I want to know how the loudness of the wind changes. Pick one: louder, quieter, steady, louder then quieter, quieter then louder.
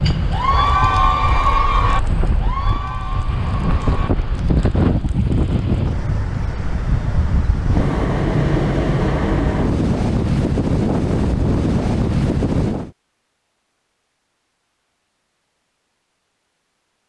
louder.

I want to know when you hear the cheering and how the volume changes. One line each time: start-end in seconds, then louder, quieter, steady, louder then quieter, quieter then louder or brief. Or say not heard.
0.0-4.7 quieter.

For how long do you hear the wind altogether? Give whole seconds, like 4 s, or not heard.
13 s.